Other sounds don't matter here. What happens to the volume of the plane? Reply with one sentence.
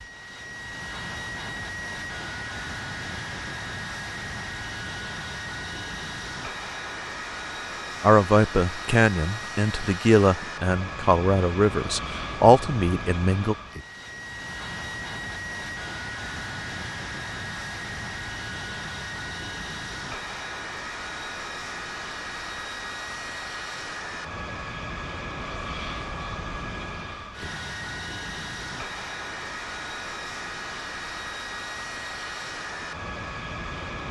The volume of the plane stays about the same.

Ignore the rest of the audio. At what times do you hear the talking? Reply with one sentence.
The talking can be heard from 8.0 to 13.6 s.